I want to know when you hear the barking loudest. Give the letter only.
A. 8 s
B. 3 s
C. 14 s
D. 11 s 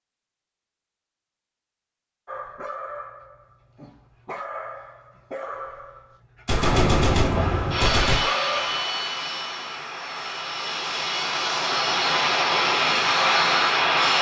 A.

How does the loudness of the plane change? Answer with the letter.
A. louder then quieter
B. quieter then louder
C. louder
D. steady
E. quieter
B.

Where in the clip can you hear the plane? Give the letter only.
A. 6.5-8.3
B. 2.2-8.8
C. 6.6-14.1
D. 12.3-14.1
C.